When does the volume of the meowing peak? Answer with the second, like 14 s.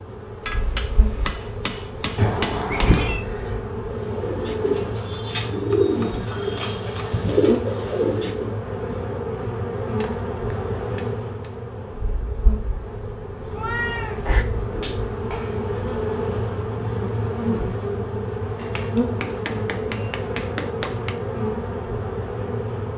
3 s.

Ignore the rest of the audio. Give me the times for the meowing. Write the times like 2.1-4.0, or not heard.
2.1-3.2, 13.5-15.0.